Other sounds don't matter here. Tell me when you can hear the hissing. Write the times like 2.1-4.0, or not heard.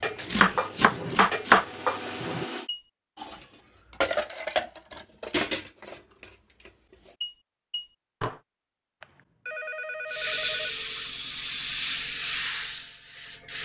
10.1-13.6.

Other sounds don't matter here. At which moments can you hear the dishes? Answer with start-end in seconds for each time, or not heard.
0.0-8.4.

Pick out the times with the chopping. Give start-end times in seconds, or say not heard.
0.1-1.6.